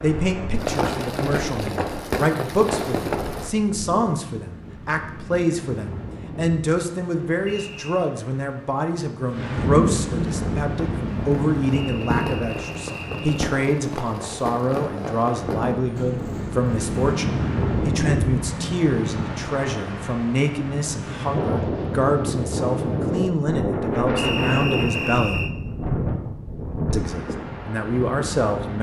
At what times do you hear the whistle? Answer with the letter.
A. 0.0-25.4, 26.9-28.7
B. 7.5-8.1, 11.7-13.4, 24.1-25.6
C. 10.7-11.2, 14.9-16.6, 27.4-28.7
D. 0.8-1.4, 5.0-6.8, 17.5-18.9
B.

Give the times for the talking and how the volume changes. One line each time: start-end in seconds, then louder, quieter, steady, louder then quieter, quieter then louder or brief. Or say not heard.
0.0-25.4 steady
26.9-28.7 brief.